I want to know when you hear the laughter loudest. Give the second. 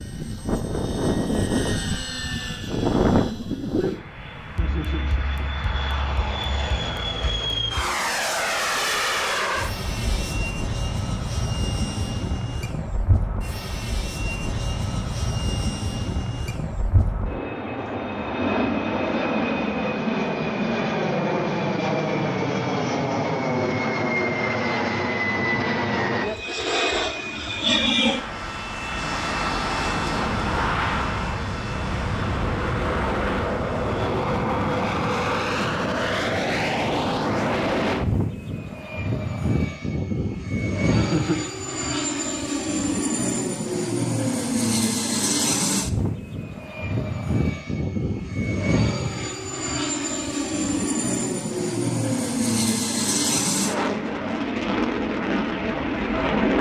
41 s.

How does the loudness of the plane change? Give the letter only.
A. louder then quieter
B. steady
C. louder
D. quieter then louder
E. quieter
B.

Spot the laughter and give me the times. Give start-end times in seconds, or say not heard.
4.5-5.5, 40.9-41.5.